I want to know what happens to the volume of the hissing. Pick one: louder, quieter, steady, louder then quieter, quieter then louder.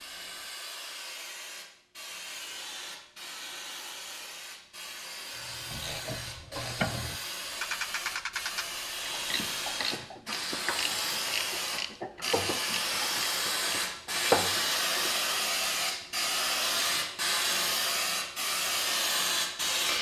louder.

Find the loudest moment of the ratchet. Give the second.
14 s.